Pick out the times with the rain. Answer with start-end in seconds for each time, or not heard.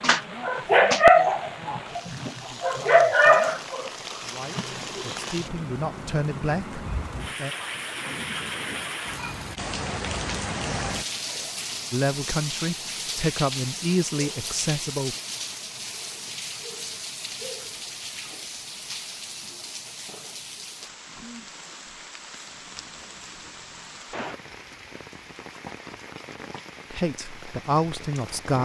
0.0-28.5.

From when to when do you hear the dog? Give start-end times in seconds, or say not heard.
0.0-5.5.